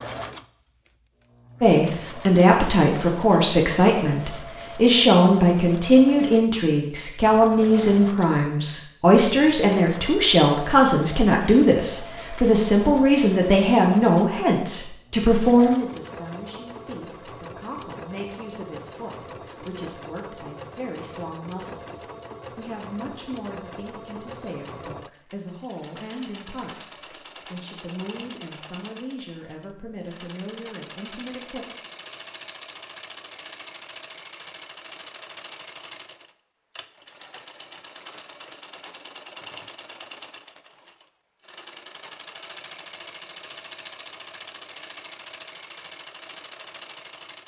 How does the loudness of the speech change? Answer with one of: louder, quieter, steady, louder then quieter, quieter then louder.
quieter.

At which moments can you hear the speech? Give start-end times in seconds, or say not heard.
1.6-31.6.